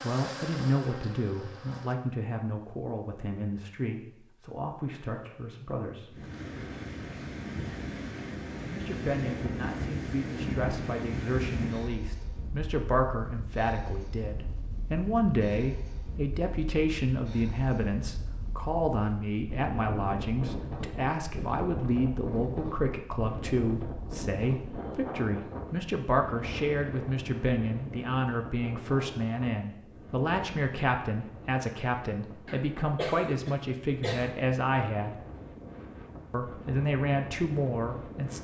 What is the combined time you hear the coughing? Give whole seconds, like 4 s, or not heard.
2 s.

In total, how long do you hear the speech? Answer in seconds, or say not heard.
35 s.